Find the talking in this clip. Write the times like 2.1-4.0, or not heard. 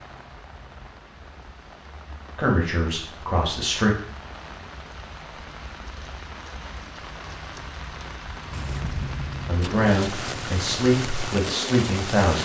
2.4-3.9, 9.4-12.4.